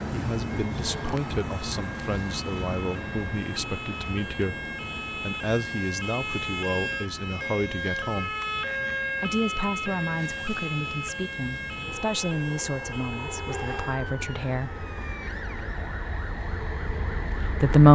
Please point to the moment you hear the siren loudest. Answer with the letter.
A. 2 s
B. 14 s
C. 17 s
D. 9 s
D.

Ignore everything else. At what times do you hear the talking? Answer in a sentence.
The talking can be heard from 0.1 to 4.5 s, from 5.2 to 8.3 s, from 9.2 to 14.8 s and from 17.2 to 17.8 s.